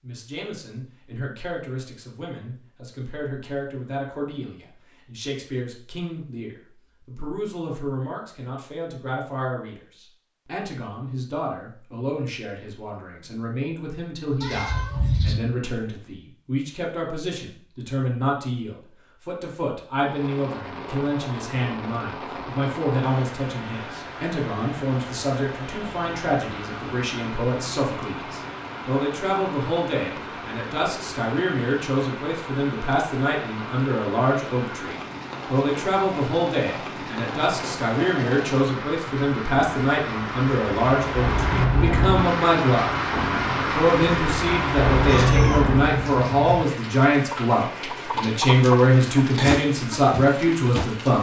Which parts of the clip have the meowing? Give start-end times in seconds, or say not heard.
14.4-15.3, 45.0-46.6.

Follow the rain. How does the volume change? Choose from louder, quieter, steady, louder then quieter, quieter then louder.
louder.